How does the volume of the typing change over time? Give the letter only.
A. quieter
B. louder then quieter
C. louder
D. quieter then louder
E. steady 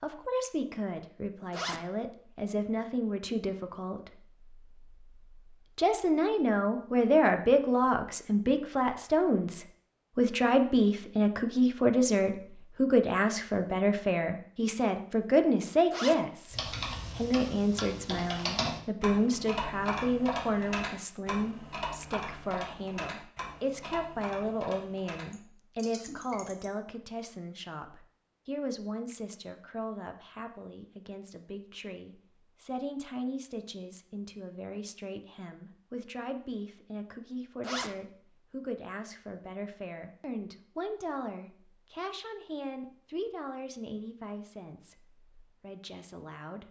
A.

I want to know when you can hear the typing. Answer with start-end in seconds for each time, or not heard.
16.5-26.7.